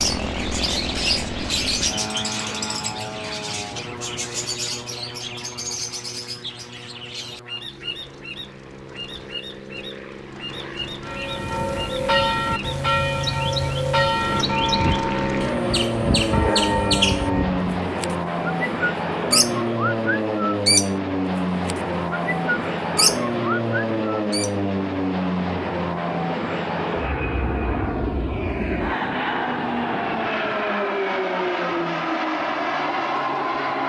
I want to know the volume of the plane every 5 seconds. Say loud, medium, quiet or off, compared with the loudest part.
medium, quiet, medium, loud, loud, loud, loud.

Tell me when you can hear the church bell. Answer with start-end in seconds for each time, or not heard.
11.0-17.8.